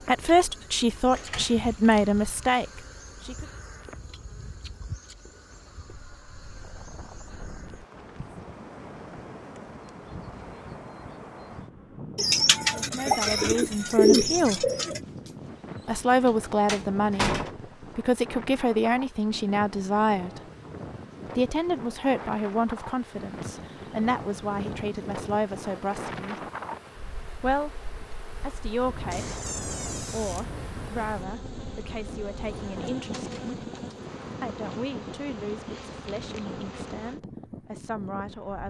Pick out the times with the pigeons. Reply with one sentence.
The pigeons can be heard from 12.2 to 15.0 s and from 32.5 to 34.1 s.